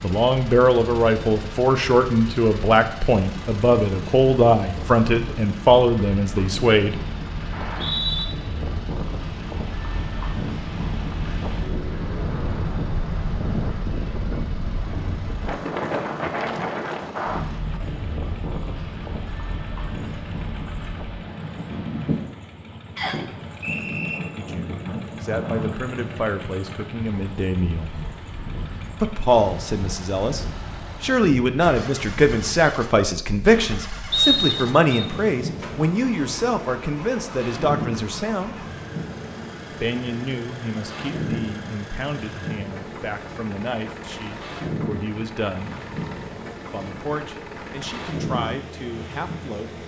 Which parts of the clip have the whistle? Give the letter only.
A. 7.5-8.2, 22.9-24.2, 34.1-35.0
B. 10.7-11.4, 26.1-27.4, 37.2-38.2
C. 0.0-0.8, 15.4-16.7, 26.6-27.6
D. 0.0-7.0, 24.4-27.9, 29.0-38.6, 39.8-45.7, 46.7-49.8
A.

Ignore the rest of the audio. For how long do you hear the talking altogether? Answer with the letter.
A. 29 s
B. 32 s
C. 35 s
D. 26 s
A.